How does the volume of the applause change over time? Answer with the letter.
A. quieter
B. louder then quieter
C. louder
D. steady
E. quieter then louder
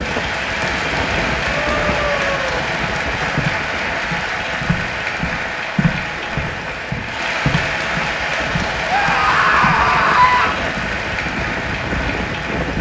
D.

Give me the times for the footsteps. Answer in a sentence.
The footsteps can be heard from 2.8 to 10.9 s.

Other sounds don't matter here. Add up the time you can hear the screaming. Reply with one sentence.
You can hear the screaming for 3 seconds altogether.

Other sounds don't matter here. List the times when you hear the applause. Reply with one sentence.
The applause can be heard from 0.0 to 12.7 s.